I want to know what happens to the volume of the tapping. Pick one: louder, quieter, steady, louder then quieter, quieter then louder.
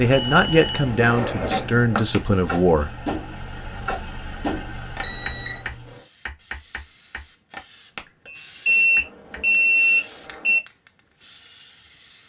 quieter.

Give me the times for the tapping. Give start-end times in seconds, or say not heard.
2.1-9.4.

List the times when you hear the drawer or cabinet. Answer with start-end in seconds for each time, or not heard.
0.9-2.0.